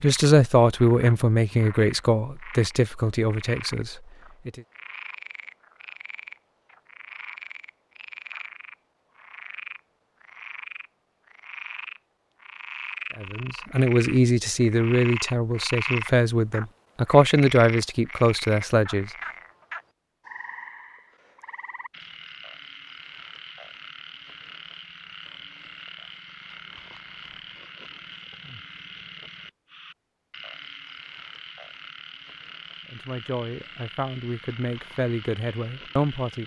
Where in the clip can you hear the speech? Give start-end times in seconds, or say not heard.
0.0-4.6, 13.2-19.1, 32.9-36.4.